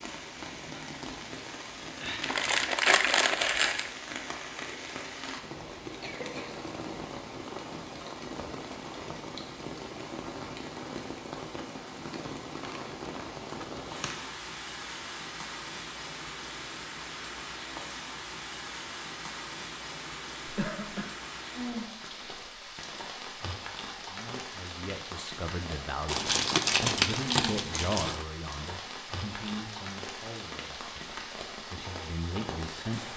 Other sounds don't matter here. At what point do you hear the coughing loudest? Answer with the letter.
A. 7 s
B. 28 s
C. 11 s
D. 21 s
D.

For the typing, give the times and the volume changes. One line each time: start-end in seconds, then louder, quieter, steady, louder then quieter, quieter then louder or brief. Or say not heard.
not heard.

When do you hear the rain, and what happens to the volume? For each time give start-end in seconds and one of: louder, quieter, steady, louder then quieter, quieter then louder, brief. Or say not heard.
0.0-33.1 steady.